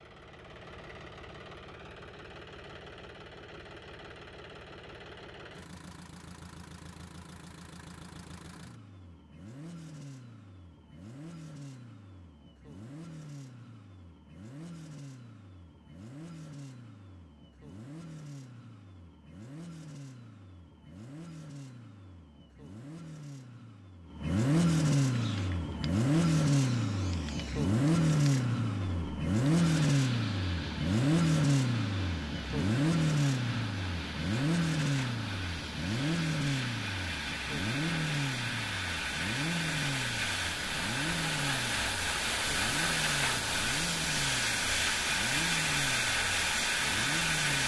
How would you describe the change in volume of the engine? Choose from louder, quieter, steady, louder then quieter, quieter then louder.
louder then quieter.